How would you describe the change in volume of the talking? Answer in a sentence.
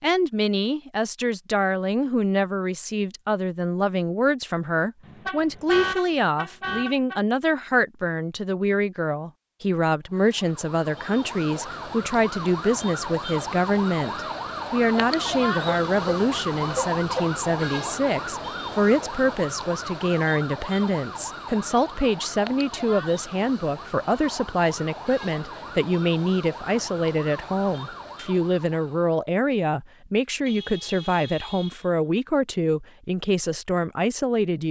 The loudness of the talking stays about the same.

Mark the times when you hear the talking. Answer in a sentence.
You can hear the talking from 0.0 to 34.6 s.